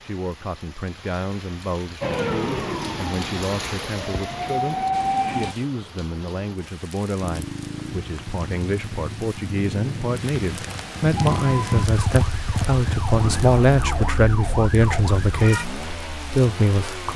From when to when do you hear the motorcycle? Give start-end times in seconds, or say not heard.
7.2-17.1.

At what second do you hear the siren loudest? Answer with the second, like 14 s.
5 s.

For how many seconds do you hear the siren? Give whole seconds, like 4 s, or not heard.
8 s.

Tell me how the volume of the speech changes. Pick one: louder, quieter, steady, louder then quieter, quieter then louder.
louder.